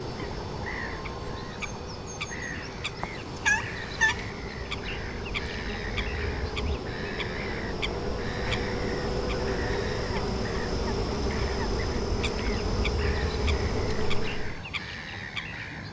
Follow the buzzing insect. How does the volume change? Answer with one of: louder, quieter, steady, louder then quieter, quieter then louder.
louder.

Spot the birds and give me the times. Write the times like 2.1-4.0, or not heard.
0.0-15.8.